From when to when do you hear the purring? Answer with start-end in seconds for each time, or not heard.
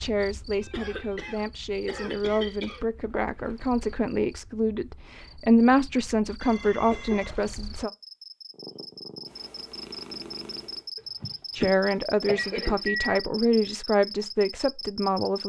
8.5-10.9.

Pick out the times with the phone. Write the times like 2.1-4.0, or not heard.
0.5-1.4, 6.4-7.5, 12.3-13.2.